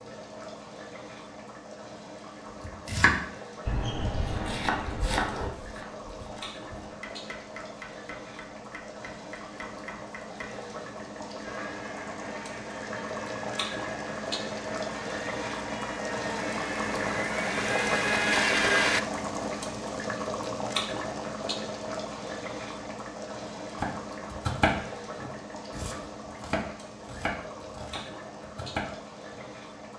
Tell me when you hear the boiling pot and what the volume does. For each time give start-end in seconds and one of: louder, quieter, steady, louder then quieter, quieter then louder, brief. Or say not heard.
0.0-29.9 louder then quieter.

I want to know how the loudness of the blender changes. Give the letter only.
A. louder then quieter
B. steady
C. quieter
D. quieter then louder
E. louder
E.